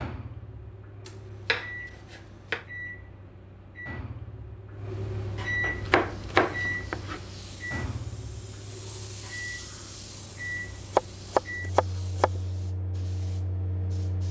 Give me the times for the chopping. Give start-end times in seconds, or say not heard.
1.1-2.6, 5.6-7.2, 10.9-12.4.